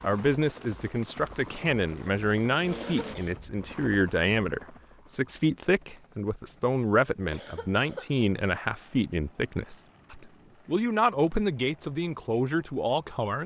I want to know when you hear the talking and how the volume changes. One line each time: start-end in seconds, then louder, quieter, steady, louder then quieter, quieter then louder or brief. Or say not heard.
0.0-13.4 steady.